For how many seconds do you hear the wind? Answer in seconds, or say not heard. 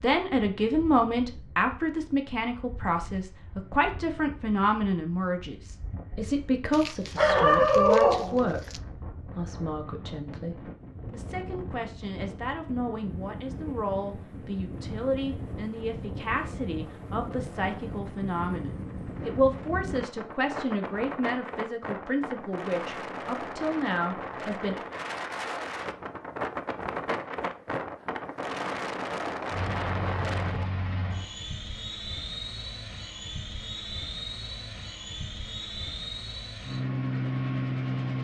31 s.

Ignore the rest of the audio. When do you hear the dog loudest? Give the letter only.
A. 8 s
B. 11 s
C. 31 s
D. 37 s
A.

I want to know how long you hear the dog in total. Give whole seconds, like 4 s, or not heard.
2 s.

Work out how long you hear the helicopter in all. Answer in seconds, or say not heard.
9 s.